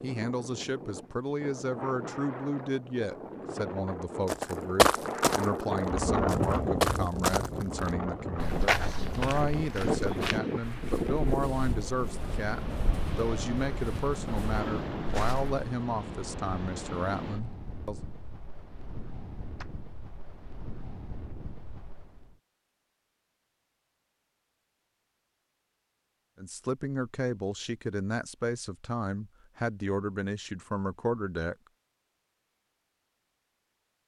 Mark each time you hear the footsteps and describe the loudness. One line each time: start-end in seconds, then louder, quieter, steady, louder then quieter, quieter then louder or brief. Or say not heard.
4.2-15.7 quieter.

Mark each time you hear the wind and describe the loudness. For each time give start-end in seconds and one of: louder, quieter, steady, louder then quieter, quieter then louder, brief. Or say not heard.
0.0-22.4 louder then quieter.